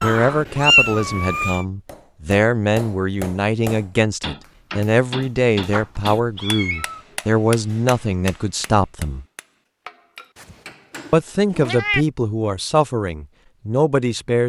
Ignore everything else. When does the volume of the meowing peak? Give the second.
1 s.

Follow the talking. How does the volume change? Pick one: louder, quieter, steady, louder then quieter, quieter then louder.
steady.